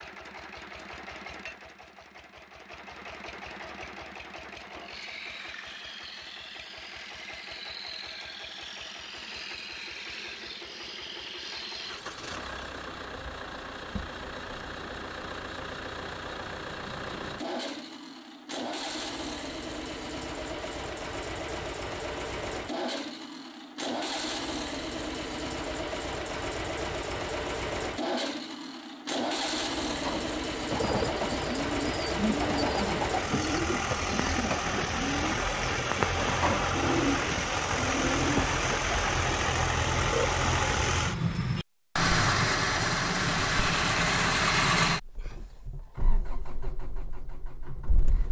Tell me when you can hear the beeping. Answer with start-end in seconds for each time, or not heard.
not heard.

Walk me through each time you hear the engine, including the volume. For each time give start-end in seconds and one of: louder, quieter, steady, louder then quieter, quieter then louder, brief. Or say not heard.
0.0-48.2 louder.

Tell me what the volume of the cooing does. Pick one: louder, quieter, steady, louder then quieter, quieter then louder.
steady.